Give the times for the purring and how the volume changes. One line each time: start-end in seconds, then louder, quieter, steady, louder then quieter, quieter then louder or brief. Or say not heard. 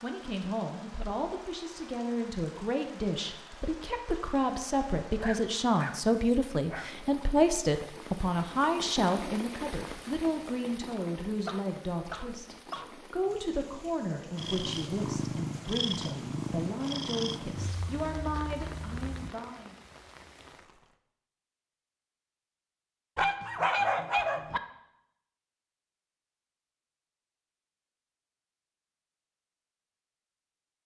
14.3-19.3 quieter.